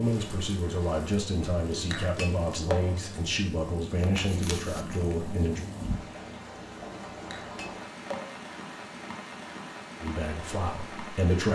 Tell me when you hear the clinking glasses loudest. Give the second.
3 s.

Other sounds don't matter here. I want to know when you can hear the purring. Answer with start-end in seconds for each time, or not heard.
4.0-6.4.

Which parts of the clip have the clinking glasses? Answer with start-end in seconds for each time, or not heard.
1.9-3.0, 7.3-8.4.